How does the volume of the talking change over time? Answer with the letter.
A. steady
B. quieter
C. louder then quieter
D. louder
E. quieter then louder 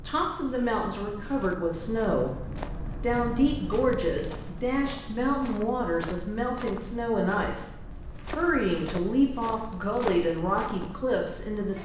A.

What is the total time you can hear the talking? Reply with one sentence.
You can hear the talking for 12 seconds altogether.